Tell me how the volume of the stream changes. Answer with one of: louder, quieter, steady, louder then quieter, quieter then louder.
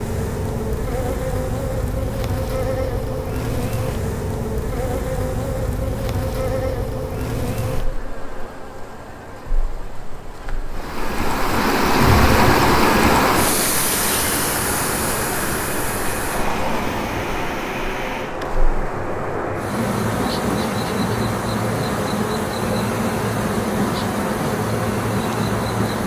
quieter.